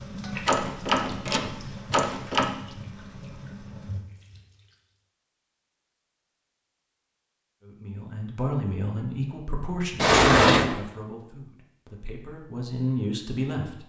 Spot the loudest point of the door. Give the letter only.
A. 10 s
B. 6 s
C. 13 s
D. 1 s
A.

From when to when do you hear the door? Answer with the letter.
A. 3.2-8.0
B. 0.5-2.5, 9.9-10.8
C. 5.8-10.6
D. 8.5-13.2
B.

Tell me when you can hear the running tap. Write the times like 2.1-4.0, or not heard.
0.0-4.8.